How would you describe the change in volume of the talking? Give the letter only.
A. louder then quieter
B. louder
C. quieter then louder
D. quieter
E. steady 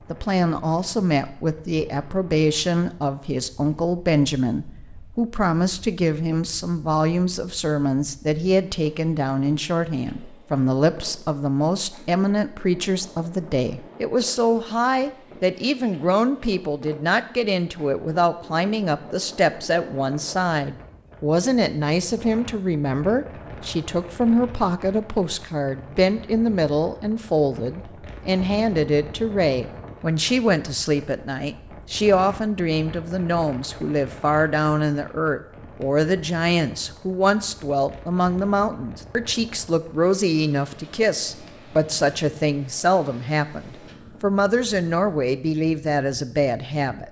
E.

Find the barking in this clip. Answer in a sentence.
The barking can't be heard in this clip.